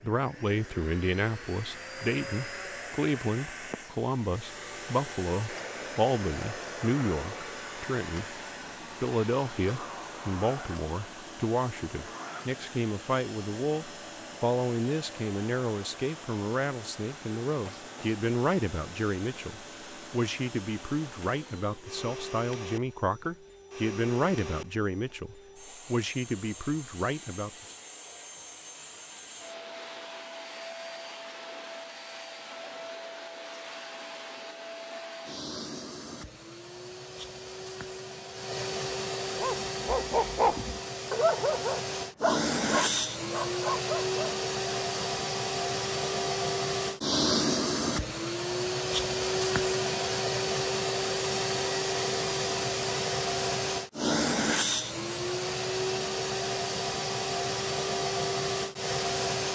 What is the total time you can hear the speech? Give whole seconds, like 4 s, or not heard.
27 s.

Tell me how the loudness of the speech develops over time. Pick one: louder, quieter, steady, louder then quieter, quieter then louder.
steady.